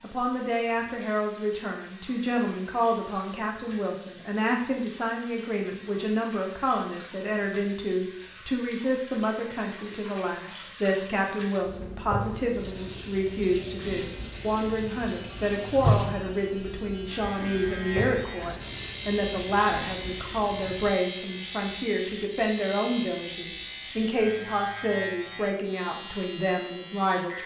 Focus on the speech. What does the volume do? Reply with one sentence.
The volume of the speech stays about the same.